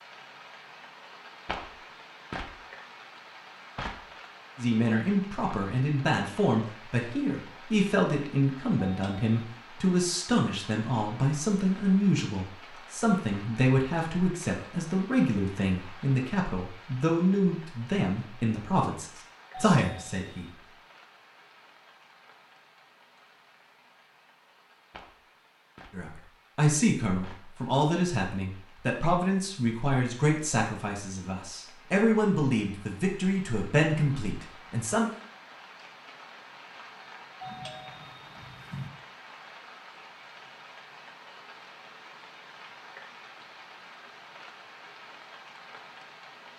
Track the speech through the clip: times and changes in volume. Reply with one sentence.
The speech can be heard from 4.5 to 20.5 s, at a steady volume; and from 25.9 to 35.1 s, at a steady volume.